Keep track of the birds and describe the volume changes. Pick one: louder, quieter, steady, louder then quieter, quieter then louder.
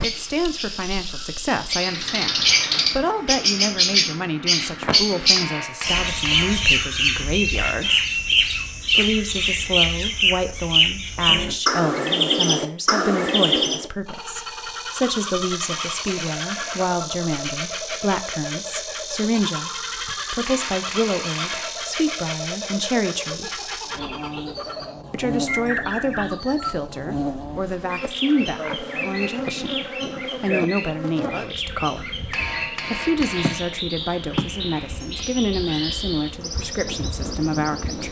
quieter.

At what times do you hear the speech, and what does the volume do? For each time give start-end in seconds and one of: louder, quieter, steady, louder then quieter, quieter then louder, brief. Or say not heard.
0.0-8.1 steady
8.9-23.6 steady
25.1-38.0 steady.